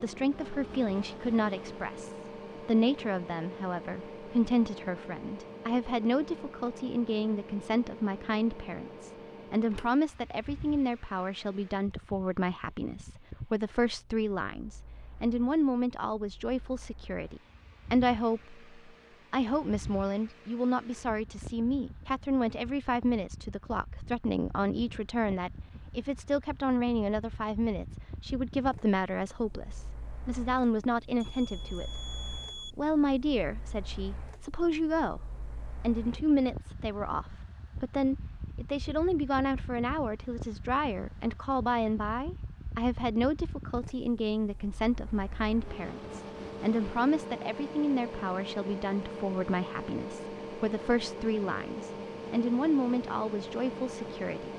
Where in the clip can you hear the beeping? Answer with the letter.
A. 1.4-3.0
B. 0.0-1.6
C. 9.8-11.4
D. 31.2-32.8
D.